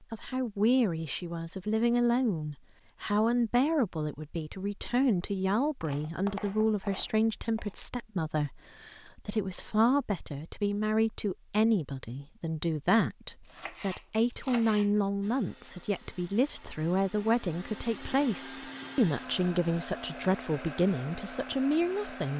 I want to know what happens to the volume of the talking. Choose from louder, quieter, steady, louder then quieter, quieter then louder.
steady.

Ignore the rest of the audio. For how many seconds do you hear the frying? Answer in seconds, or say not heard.
not heard.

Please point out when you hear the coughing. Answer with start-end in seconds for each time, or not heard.
not heard.